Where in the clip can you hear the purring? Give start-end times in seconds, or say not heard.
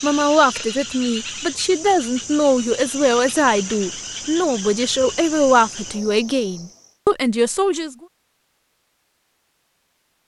not heard.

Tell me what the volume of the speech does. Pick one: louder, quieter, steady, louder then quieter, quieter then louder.
steady.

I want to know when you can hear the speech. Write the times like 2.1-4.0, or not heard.
0.0-8.0.